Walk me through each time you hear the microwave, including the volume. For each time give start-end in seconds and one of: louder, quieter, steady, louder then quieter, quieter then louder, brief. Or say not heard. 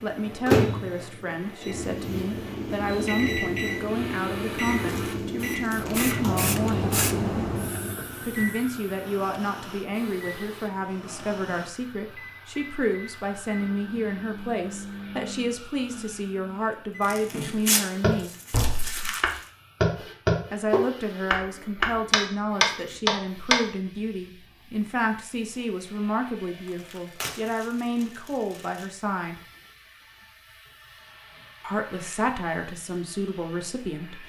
0.0-17.6 quieter.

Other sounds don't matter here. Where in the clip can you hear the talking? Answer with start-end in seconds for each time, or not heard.
0.0-7.0, 8.2-18.3, 20.5-29.4, 31.6-34.2.